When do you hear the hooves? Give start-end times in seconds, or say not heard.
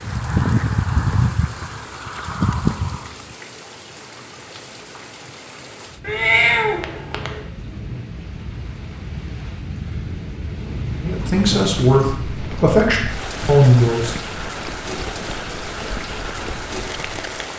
0.0-3.4, 11.1-17.4.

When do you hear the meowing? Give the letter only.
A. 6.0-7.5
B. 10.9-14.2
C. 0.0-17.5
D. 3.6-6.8
A.